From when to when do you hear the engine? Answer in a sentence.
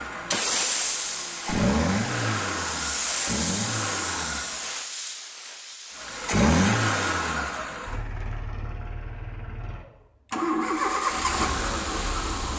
You can hear the engine from 0.0 to 4.8 s and from 6.0 to 12.5 s.